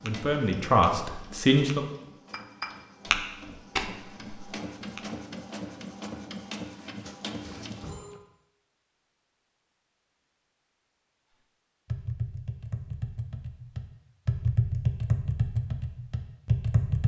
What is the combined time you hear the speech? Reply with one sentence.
You can hear the speech for 2 seconds altogether.